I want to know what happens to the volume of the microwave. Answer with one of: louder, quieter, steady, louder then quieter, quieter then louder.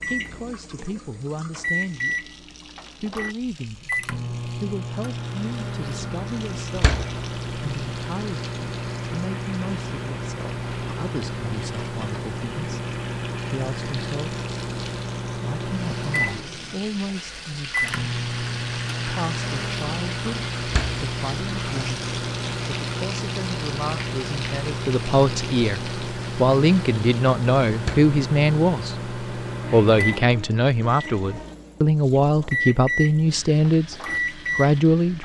steady.